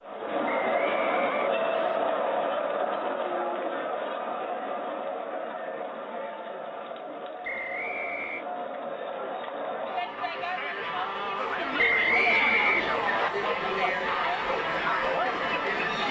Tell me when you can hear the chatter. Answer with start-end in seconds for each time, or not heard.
0.0-16.0.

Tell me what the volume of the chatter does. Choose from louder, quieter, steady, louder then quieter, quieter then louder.
quieter then louder.